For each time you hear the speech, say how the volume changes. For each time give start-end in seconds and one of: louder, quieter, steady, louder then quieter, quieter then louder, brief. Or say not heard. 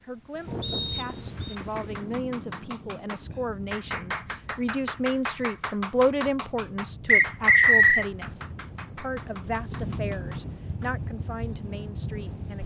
0.0-12.6 louder then quieter.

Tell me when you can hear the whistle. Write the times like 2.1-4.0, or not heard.
0.6-1.6, 7.0-8.1.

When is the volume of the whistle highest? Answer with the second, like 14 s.
8 s.